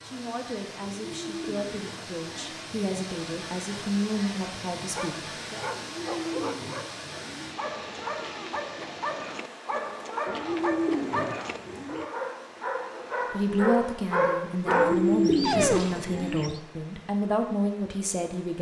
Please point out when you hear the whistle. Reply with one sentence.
The whistle can't be heard in this clip.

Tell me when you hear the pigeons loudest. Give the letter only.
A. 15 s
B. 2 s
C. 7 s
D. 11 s
A.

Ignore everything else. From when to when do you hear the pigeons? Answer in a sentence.
The pigeons can be heard from 0.8 to 2.6 s, from 5.7 to 7.5 s, from 10.2 to 12.1 s and from 14.7 to 16.5 s.